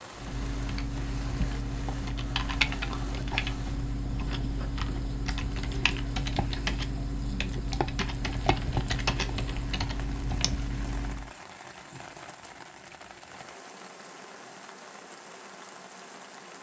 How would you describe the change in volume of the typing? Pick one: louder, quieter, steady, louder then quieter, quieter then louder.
steady.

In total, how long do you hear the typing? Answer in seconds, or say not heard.
11 s.